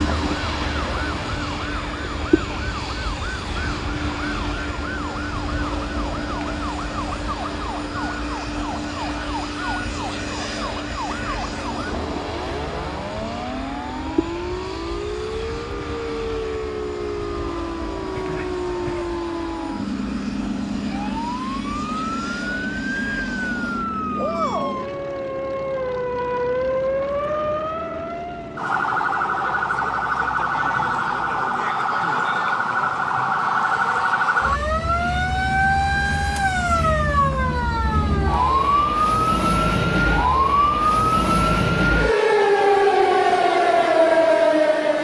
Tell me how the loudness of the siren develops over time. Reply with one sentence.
The loudness of the siren goes up.